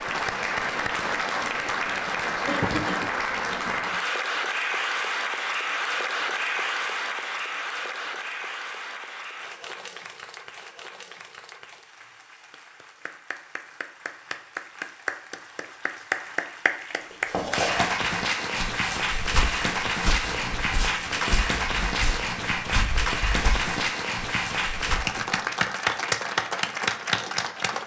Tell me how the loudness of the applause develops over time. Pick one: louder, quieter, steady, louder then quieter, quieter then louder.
quieter then louder.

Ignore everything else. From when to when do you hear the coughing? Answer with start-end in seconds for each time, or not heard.
2.5-3.8.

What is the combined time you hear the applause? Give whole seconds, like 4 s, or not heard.
28 s.